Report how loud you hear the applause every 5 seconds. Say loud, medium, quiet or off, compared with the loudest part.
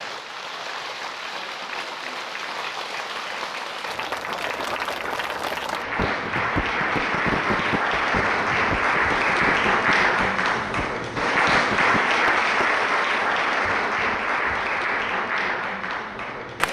medium, loud, loud, medium.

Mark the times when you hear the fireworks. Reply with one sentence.
You can hear the fireworks from 5.8 to 12.7 s.